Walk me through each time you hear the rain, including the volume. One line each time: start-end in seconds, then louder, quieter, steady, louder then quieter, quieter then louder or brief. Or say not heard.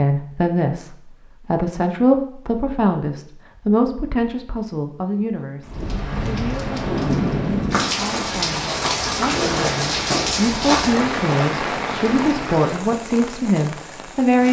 5.7-14.4 quieter.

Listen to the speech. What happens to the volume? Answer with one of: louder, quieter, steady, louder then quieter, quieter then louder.
quieter then louder.